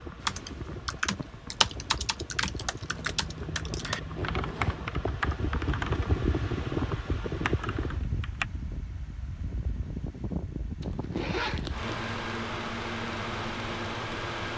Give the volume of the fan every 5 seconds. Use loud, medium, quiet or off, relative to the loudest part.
medium, loud, loud.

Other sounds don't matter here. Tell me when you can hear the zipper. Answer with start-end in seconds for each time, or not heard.
2.9-5.0, 10.8-11.9.